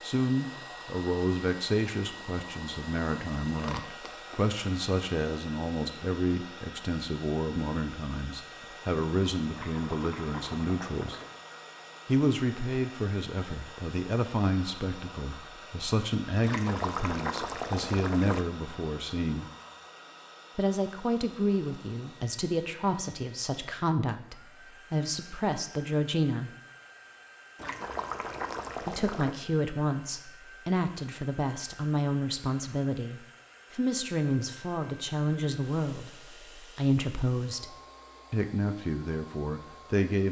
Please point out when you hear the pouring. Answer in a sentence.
The pouring can be heard from 9.5 to 11.4 s, from 16.4 to 18.4 s and from 27.6 to 29.4 s.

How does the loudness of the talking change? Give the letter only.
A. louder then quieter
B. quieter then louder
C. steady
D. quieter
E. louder
C.